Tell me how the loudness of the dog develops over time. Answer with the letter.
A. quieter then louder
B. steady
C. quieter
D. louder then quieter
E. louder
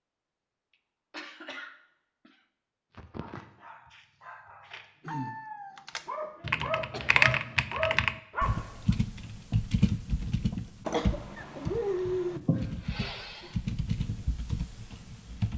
E.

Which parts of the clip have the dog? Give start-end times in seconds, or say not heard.
3.0-8.9.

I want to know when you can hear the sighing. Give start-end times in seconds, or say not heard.
12.3-13.5.